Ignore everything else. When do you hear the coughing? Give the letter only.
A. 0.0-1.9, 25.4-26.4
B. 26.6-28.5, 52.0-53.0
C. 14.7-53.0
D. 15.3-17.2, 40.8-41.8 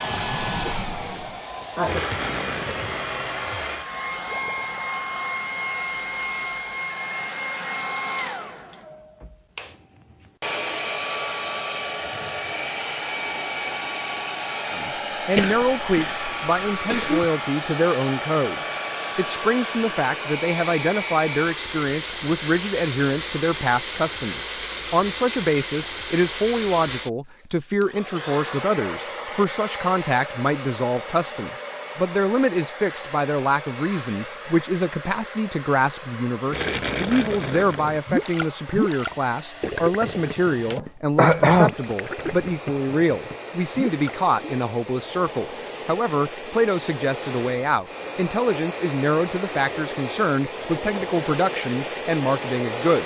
D.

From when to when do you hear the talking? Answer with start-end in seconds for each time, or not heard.
14.7-53.0.